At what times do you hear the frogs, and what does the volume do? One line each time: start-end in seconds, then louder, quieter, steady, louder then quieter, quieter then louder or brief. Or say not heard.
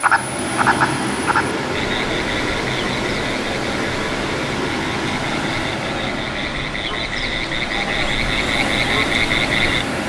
0.0-9.8 quieter then louder.